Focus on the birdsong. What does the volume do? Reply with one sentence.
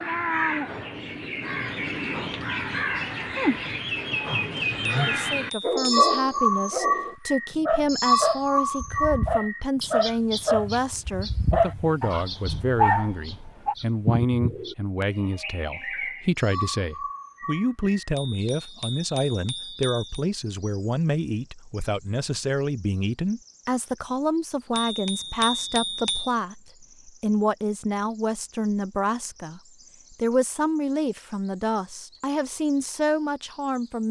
The loudness of the birdsong goes down.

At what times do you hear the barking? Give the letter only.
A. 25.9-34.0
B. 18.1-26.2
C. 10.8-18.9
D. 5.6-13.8
D.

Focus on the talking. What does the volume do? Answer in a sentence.
The loudness of the talking stays about the same.